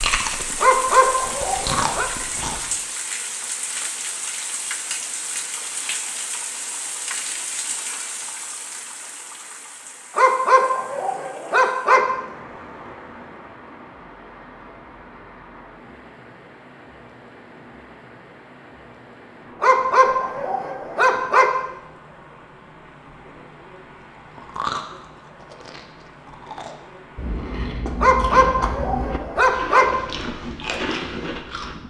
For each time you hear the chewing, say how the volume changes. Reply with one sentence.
The chewing can be heard briefly from 0.0 to 2.6 s; and from 24.4 to 31.8 s, getting louder.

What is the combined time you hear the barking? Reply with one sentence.
The barking can be heard for 7 seconds in total.